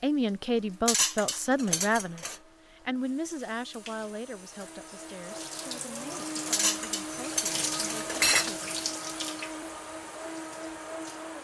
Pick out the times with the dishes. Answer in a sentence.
You can hear the dishes from 0.8 to 2.4 s and from 6.5 to 8.5 s.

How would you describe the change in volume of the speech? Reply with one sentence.
The volume of the speech goes down.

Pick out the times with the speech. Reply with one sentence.
The speech can be heard from 0.0 to 8.8 s.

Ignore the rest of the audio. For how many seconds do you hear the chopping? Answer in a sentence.
The chopping can't be heard in this clip.